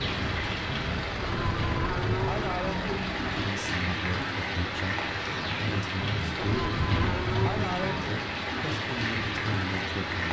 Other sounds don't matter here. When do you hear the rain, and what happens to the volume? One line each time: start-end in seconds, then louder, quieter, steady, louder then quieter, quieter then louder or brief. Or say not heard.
0.0-10.2 steady.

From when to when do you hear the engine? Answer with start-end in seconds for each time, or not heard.
0.2-3.5.